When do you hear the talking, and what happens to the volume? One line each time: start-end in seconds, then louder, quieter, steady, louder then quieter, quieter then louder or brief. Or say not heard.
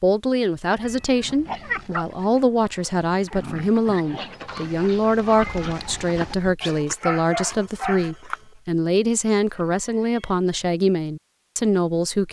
0.0-12.2 steady.